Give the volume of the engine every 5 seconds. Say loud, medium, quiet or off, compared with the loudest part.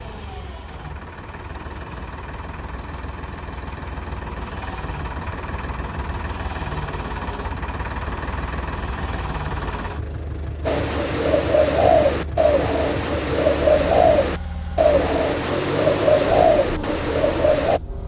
medium, loud, medium, loud.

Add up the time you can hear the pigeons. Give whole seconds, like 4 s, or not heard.
7 s.